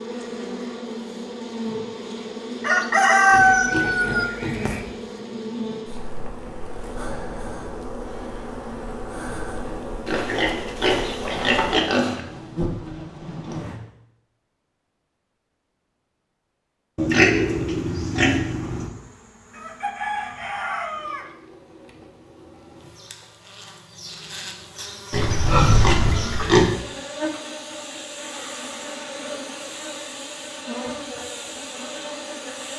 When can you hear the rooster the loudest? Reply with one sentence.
The loudest moment of the rooster is at 3 seconds.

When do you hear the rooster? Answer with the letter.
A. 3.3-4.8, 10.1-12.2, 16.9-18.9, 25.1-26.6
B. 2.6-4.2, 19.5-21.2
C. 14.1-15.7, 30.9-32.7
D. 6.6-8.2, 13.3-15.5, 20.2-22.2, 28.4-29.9
B.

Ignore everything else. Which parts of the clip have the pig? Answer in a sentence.
The pig can be heard from 3.3 to 4.8 s, from 10.1 to 12.2 s, from 16.9 to 18.9 s and from 25.1 to 26.6 s.